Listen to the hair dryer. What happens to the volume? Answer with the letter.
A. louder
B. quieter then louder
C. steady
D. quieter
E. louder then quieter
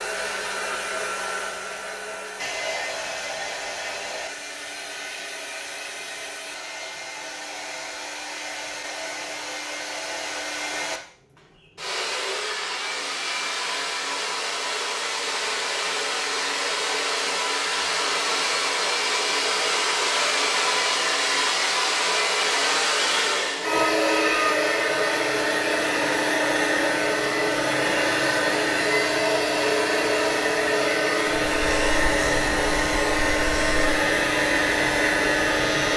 A.